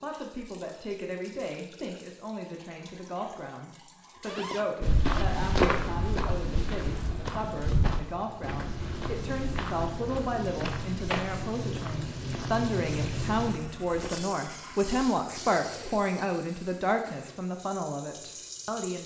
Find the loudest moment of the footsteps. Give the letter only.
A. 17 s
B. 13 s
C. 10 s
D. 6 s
D.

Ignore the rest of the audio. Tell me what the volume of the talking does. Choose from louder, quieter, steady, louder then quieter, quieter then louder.
louder.